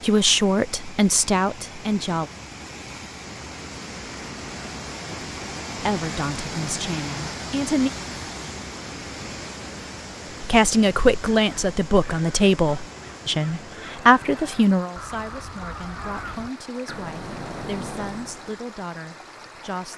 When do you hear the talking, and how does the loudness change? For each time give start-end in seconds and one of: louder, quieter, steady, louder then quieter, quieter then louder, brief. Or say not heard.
0.0-2.3 brief
5.8-7.9 brief
10.4-19.9 quieter.